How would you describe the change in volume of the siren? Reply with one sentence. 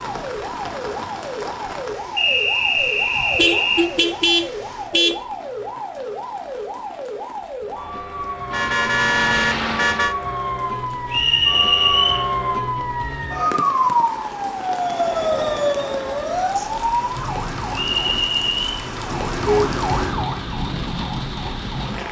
The loudness of the siren goes up, then down.